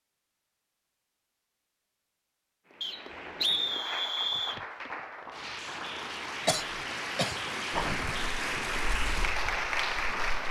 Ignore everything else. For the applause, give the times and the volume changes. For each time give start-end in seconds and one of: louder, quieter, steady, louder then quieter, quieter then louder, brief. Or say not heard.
2.6-10.4 louder.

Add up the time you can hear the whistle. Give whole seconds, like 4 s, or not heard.
2 s.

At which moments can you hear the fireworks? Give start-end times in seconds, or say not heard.
7.7-10.4.